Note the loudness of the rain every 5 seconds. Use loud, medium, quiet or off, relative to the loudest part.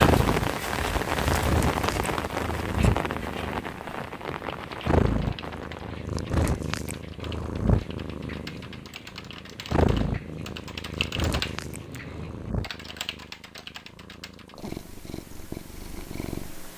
loud, quiet, quiet, off.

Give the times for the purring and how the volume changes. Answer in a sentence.
The purring can be heard from 0.0 to 16.7 s, getting quieter.